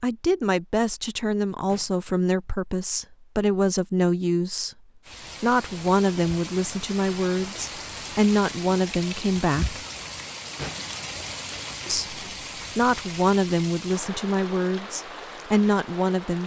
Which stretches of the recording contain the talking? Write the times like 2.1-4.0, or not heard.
0.0-4.8, 5.4-9.8, 11.8-16.4.